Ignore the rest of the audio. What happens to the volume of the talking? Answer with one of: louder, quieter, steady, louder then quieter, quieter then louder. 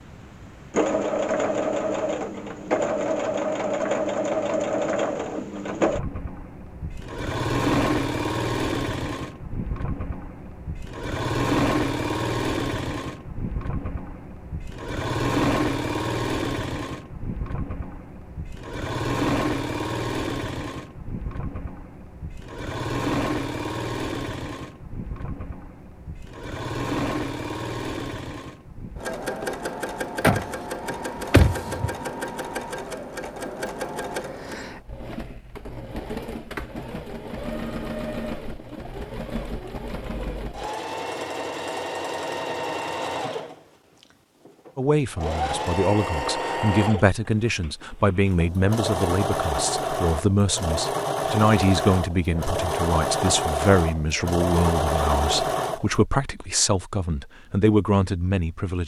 steady.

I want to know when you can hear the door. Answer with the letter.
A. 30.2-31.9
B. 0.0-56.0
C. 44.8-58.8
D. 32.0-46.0
A.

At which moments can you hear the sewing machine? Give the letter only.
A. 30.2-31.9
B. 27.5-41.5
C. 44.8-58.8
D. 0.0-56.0
D.